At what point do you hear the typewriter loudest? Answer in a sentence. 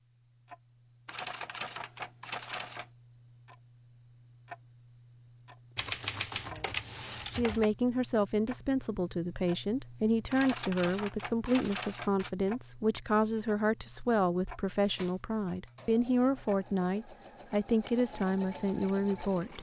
The loudest moment of the typewriter is at 6 seconds.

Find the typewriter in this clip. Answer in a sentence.
The typewriter can be heard from 1.1 to 2.9 s, from 5.8 to 7.7 s, from 10.3 to 12.3 s and from 14.9 to 15.9 s.